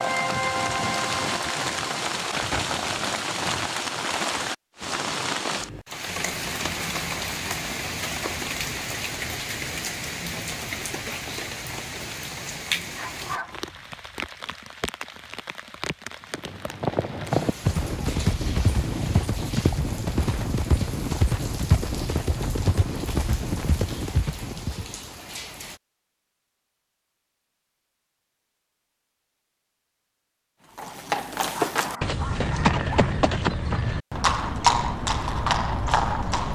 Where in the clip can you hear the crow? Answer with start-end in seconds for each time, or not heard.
not heard.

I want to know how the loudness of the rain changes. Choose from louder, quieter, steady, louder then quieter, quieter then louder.
quieter.